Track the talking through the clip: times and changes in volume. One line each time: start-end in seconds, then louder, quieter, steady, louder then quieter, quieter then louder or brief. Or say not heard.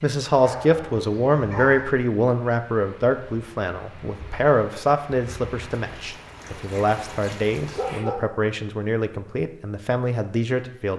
0.0-10.9 quieter.